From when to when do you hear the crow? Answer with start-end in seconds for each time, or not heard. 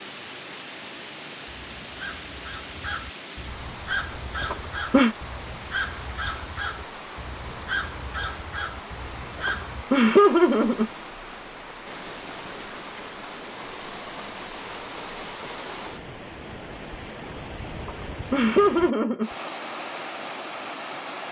1.4-9.8.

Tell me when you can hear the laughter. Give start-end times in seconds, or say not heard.
4.4-5.2, 9.4-10.9, 17.9-19.3.